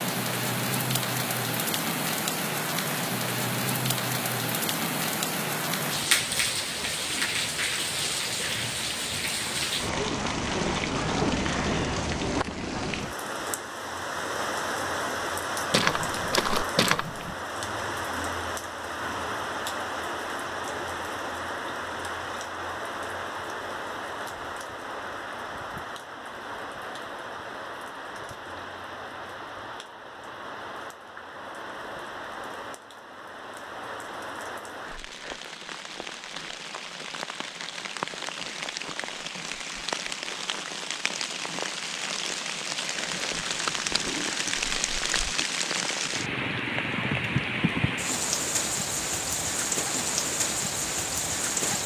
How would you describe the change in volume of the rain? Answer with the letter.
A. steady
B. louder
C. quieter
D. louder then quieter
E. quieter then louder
E.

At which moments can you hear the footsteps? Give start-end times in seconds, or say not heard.
15.7-17.4.